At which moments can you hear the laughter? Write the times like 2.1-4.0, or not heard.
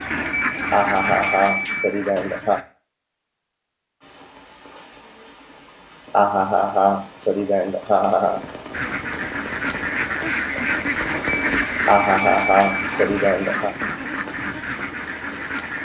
0.7-2.6, 6.1-8.4, 11.8-13.8.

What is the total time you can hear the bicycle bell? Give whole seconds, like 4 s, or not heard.
4 s.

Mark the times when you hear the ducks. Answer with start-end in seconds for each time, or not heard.
0.0-2.6, 8.7-15.8.